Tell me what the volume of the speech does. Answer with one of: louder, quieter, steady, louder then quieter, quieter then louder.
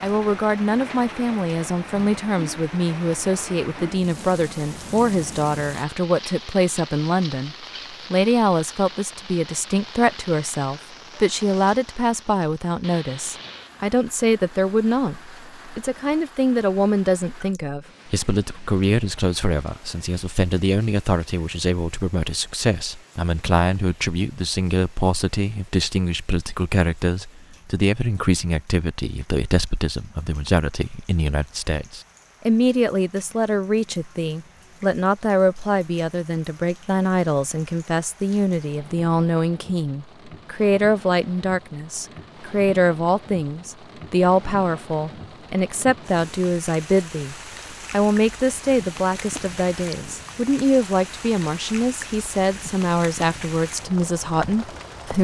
steady.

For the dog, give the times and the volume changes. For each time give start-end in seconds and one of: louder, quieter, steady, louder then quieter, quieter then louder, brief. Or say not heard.
not heard.